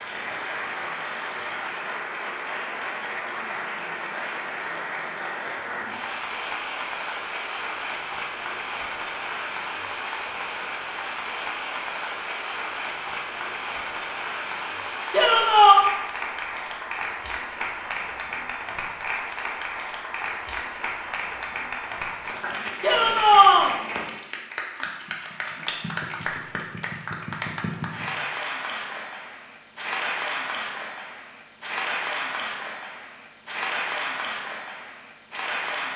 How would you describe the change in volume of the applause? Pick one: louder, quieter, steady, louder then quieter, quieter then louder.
steady.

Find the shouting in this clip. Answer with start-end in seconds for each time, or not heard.
15.1-15.8, 22.8-23.7.